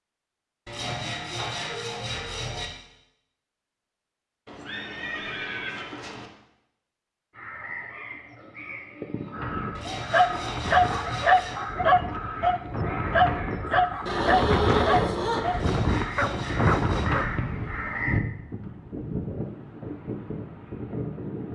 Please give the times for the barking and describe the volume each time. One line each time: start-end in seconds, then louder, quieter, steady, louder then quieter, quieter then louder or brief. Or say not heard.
9.9-17.3 quieter.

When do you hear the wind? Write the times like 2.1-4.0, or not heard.
9.3-21.5.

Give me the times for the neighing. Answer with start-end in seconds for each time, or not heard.
4.5-6.3, 14.1-15.8.